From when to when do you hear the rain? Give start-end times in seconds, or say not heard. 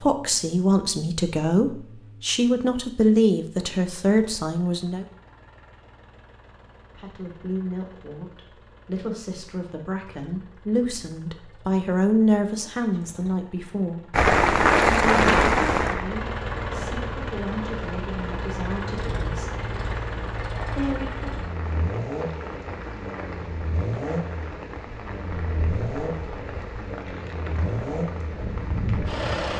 14.1-29.5.